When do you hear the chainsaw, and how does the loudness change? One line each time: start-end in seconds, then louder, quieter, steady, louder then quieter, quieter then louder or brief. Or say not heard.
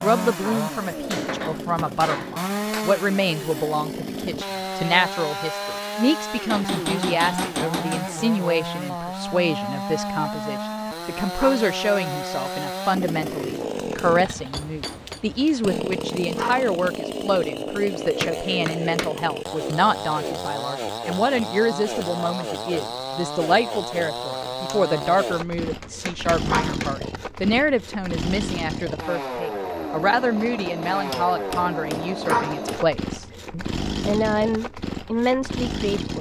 0.0-36.1 steady.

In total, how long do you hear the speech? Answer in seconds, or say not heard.
36 s.